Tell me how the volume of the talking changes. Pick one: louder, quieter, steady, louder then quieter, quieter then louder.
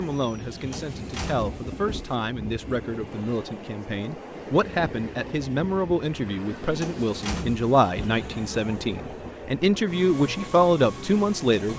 louder.